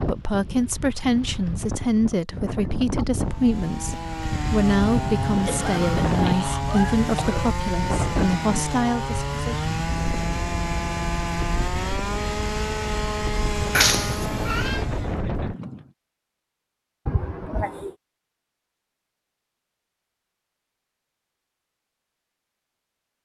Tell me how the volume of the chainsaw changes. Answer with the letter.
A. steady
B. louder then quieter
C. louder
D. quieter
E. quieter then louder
A.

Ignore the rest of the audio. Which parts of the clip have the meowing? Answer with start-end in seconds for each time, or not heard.
13.7-14.8.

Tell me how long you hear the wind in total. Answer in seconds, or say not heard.
16 s.